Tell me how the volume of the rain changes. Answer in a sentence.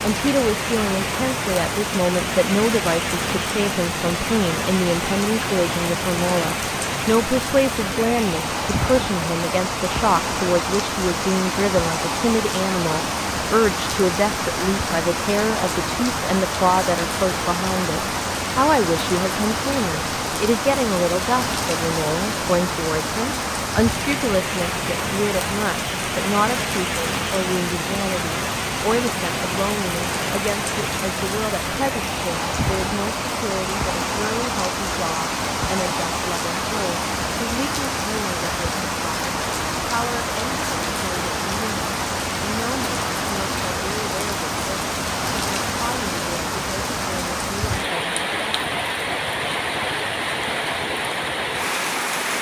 The loudness of the rain stays about the same.